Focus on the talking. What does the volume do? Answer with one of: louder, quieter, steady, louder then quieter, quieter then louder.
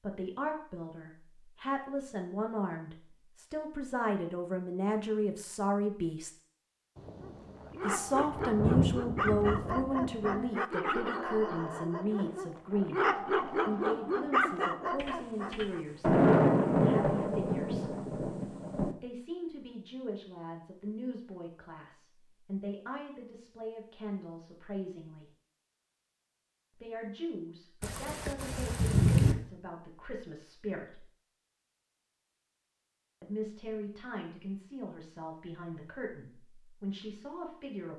quieter.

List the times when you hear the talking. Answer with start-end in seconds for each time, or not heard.
0.0-6.3, 7.8-17.9, 18.9-25.2, 26.8-31.1, 33.2-37.9.